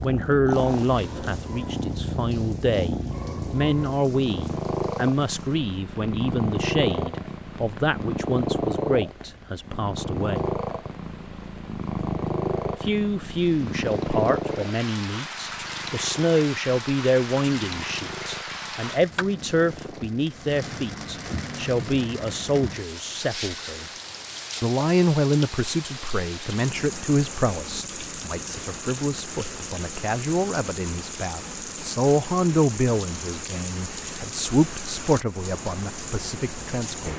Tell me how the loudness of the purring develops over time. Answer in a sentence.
The loudness of the purring goes down.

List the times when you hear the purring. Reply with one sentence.
The purring can be heard from 0.0 to 20.2 s.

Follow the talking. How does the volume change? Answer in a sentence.
The loudness of the talking stays about the same.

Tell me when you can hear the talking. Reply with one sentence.
The talking can be heard from 0.0 to 10.5 s, from 12.8 to 23.9 s and from 24.6 to 37.1 s.